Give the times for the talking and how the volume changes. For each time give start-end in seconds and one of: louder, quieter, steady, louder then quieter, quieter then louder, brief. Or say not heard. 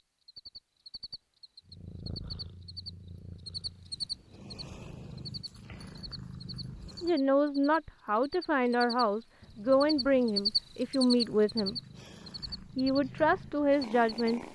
7.0-11.8 steady
12.8-14.4 brief.